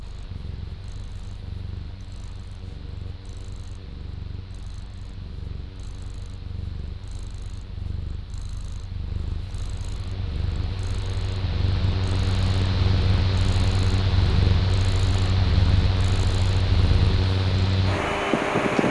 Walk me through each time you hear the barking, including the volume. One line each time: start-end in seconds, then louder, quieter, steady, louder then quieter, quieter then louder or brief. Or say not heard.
not heard.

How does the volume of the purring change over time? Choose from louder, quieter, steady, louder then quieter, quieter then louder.
louder.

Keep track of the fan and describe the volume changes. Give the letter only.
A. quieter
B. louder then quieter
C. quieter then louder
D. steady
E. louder
E.